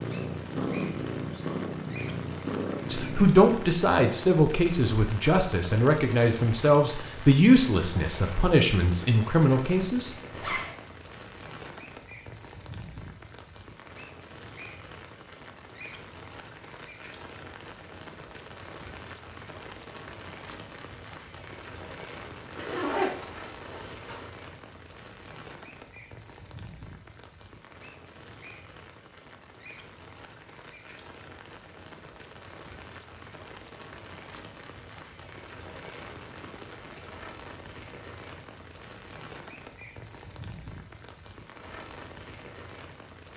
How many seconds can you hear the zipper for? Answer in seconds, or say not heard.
2 s.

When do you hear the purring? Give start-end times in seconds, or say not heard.
0.0-3.3.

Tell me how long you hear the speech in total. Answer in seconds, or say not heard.
7 s.